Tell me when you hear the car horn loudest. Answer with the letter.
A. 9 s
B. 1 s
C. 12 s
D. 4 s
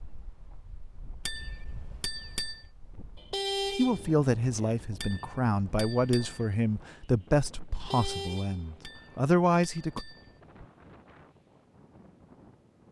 D.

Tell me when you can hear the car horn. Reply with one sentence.
The car horn can be heard from 3.1 to 4.8 s and from 7.8 to 8.8 s.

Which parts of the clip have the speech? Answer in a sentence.
The speech can be heard from 3.8 to 10.1 s.